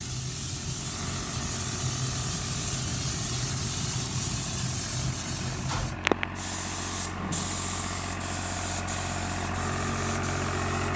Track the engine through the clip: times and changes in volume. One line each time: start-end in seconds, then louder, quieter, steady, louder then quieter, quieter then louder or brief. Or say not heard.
0.0-10.9 louder.